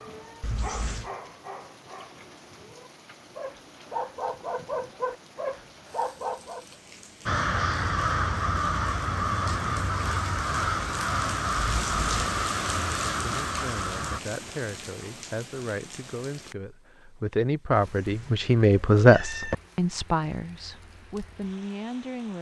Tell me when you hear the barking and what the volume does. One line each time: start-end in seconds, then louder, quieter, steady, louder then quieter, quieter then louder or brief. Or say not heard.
0.0-6.7 quieter then louder.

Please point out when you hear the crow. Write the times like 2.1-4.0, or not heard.
7.2-14.2.